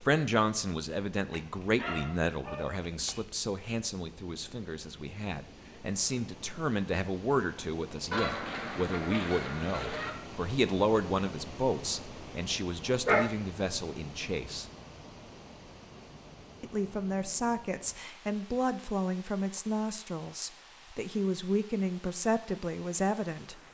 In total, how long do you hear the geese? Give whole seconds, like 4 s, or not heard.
2 s.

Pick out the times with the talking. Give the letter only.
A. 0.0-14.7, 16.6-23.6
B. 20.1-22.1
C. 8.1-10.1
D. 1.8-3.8
A.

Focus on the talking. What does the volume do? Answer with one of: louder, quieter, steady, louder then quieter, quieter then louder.
steady.